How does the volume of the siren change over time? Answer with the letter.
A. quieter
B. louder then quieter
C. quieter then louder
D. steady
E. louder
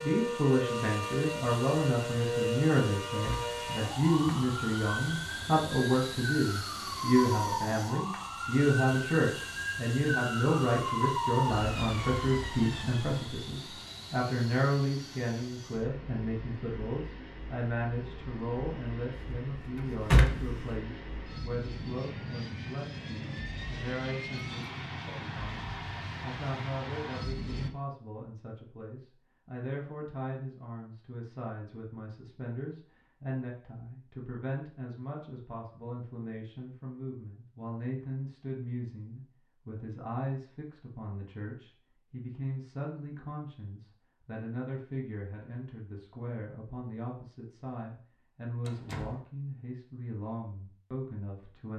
D.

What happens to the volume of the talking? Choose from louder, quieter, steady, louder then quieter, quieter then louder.
quieter.